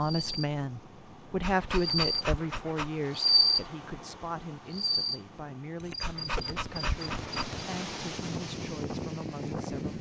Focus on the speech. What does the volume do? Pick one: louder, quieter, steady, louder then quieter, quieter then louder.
quieter.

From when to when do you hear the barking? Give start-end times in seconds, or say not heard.
1.4-3.0, 6.0-7.5.